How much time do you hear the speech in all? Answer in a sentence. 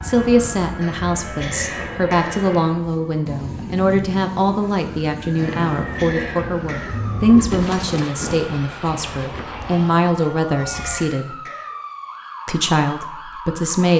The speech can be heard for 13 seconds in total.